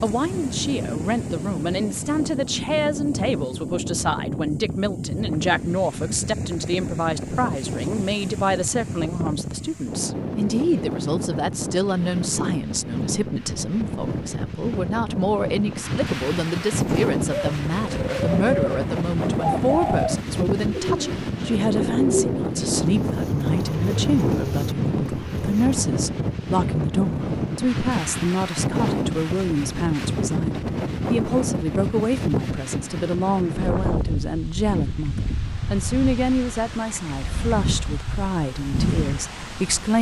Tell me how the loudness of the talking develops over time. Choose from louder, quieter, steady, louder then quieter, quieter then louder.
steady.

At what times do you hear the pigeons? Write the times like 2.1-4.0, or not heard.
16.7-25.9.